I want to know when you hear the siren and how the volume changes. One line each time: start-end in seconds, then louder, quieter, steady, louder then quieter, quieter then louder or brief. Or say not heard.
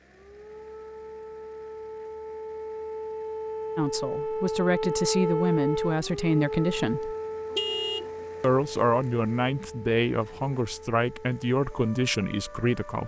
0.0-13.0 louder then quieter.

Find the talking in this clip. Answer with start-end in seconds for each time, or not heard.
3.8-7.2, 8.4-13.0.